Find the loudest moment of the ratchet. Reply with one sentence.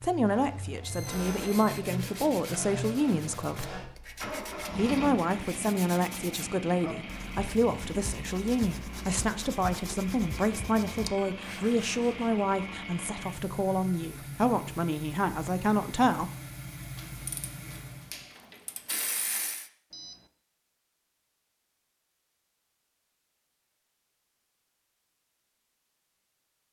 The loudest moment of the ratchet is at 19 seconds.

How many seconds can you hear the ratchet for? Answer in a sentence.
You can hear the ratchet for 3 seconds altogether.